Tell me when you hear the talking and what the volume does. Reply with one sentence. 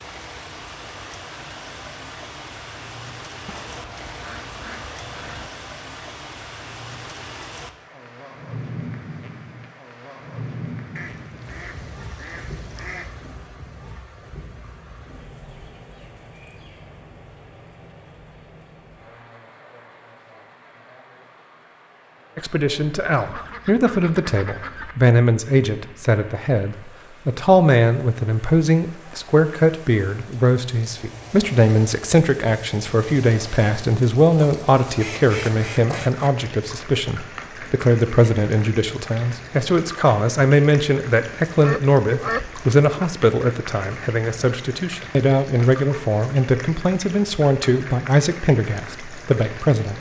You can hear the talking from 22.4 to 49.9 s, at a steady volume.